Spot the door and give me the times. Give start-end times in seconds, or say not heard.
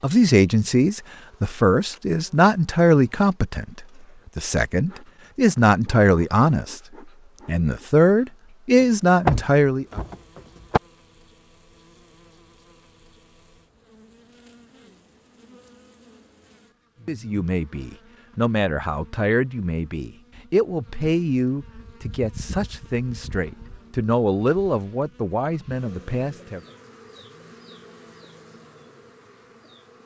8.8-10.8.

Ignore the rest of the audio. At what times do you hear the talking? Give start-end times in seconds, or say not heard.
0.0-6.8, 7.5-10.0, 17.1-26.6.